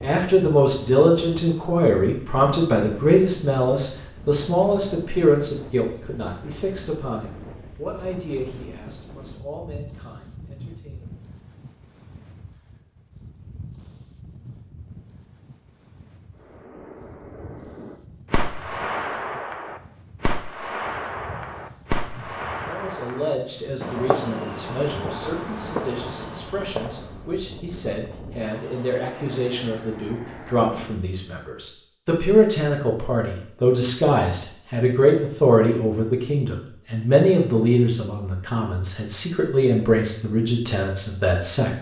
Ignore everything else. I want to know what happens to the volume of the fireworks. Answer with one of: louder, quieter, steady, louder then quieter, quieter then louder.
steady.